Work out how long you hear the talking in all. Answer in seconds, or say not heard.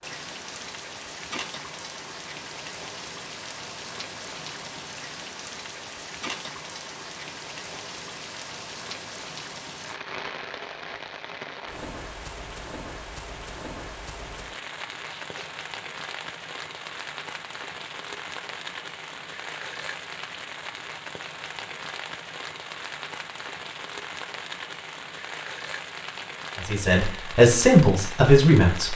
2 s.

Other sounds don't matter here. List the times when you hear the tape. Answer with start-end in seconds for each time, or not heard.
15.1-15.5.